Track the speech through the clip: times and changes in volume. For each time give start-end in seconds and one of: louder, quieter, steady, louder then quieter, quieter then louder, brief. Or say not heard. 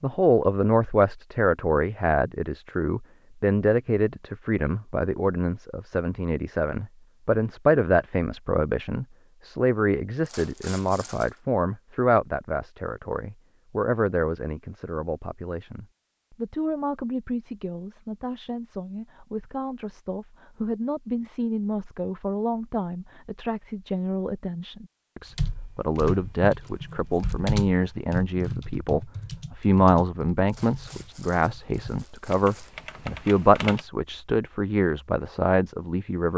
0.0-36.3 quieter then louder.